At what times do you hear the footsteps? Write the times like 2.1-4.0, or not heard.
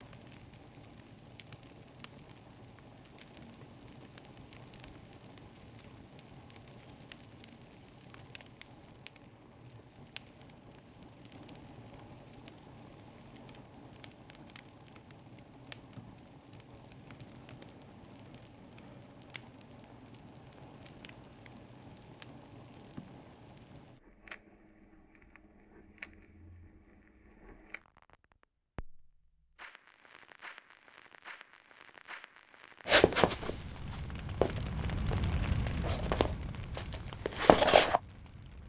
32.9-38.0.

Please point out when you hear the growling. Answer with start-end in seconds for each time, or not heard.
not heard.